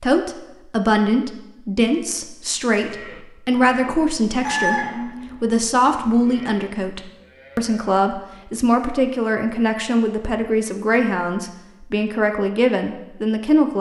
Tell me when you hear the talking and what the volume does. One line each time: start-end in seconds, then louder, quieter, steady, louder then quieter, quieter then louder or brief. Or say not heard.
0.0-13.7 steady.